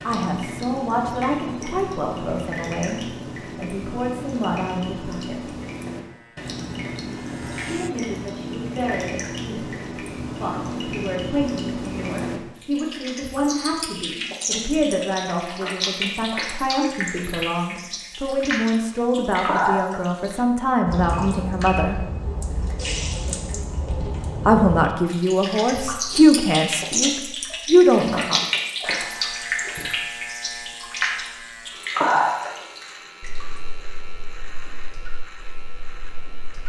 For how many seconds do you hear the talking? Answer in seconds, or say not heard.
24 s.